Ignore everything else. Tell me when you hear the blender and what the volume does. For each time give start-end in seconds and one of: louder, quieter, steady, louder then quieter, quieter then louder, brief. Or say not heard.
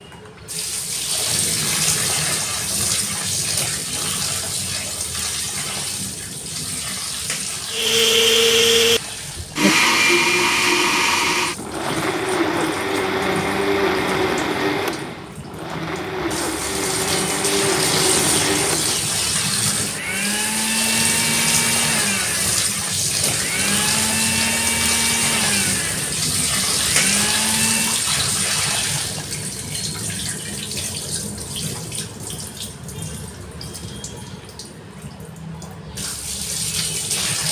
7.7-28.1 quieter.